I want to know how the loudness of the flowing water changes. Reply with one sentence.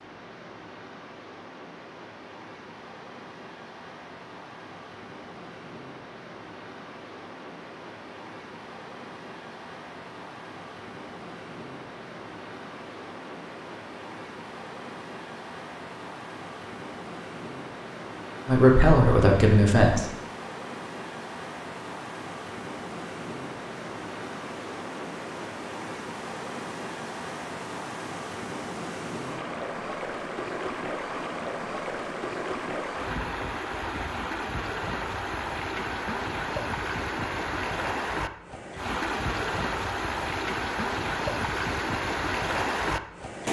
The loudness of the flowing water goes up.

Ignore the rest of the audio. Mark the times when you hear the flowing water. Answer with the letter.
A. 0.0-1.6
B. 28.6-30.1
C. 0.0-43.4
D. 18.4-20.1
C.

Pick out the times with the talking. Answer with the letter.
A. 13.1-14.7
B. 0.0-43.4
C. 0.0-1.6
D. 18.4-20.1
D.